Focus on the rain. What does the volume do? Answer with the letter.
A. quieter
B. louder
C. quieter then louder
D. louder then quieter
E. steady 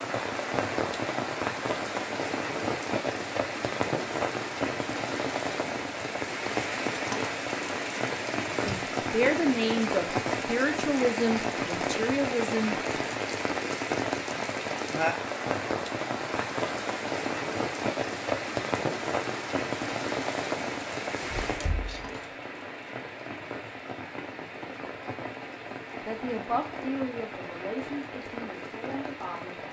A.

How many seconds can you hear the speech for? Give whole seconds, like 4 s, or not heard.
8 s.